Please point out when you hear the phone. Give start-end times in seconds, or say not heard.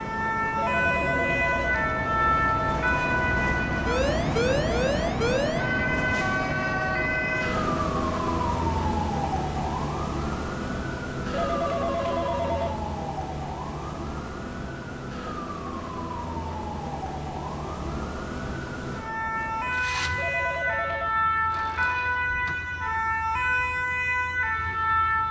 0.6-1.8, 11.3-12.8, 20.1-21.1.